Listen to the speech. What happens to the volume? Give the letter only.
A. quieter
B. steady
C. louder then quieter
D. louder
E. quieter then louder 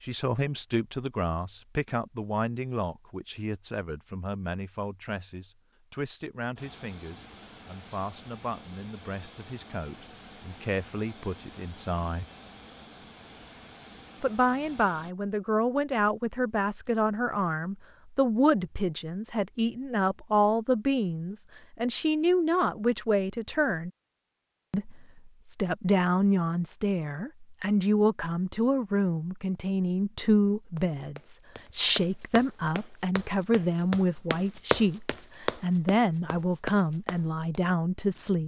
D.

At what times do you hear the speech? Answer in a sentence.
You can hear the speech from 0.0 to 12.2 s, from 14.2 to 23.9 s and from 24.7 to 38.4 s.